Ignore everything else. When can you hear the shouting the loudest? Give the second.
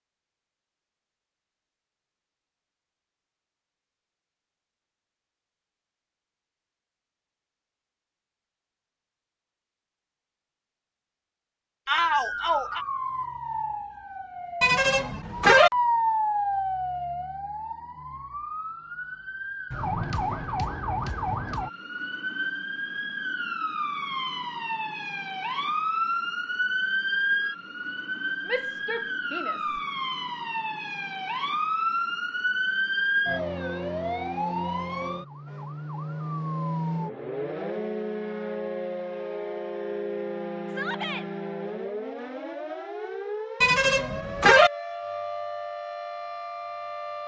12 s.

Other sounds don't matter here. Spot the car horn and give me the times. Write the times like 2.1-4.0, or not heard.
14.6-15.7, 43.6-44.7.